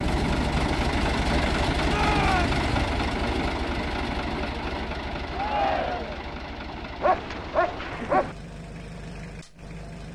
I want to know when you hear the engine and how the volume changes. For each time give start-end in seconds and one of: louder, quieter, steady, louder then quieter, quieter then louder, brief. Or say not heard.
0.0-10.1 quieter.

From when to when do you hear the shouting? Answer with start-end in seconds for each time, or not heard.
1.9-2.6, 5.3-6.2.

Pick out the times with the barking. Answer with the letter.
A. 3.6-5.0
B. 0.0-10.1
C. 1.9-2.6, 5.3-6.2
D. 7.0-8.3
D.